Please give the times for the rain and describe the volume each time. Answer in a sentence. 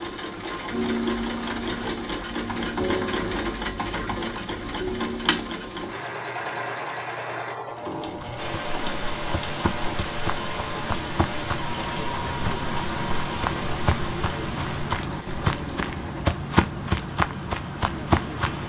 The rain can be heard from 8.3 to 18.6 s, getting quieter.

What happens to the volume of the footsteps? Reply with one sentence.
The volume of the footsteps goes up.